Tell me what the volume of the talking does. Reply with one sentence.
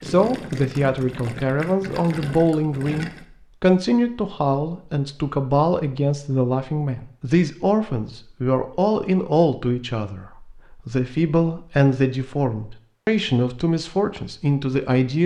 The volume of the talking stays about the same.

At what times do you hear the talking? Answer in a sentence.
You can hear the talking from 0.0 to 15.2 s.